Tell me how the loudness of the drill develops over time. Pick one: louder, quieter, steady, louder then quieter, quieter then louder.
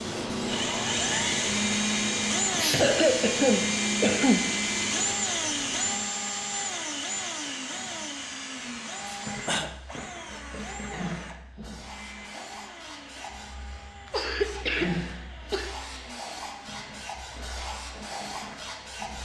quieter.